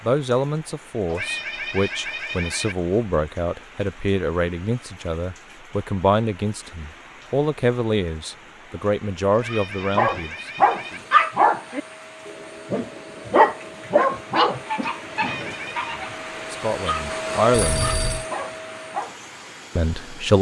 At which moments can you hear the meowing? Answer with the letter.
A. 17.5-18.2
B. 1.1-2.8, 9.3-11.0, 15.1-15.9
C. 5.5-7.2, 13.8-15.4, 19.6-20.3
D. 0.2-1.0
B.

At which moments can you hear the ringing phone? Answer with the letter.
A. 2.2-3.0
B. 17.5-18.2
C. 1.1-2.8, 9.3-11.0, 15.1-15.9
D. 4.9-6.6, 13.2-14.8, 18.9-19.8
B.